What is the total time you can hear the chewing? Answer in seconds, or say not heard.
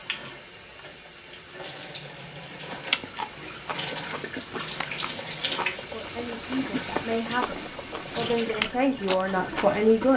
7 s.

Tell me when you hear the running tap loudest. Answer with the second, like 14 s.
5 s.